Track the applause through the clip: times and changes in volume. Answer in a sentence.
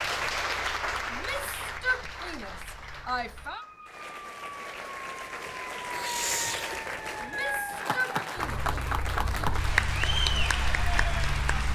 You can hear the applause from 0.0 to 11.7 s, getting quieter then louder.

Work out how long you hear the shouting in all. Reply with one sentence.
The shouting can be heard for 4 seconds in total.